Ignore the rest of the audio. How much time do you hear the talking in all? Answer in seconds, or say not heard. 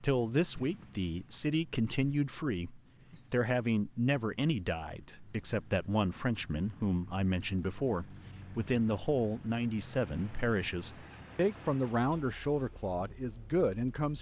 14 s.